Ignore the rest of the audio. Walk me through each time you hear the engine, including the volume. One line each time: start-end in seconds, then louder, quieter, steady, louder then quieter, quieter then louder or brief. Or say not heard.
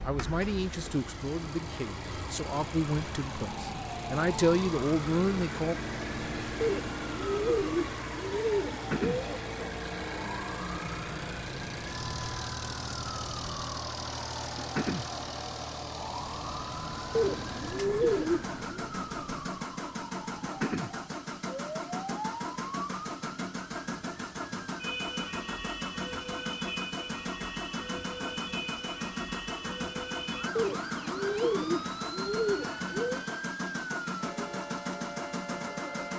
0.0-36.1 steady.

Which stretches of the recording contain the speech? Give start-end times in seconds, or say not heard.
0.1-5.8.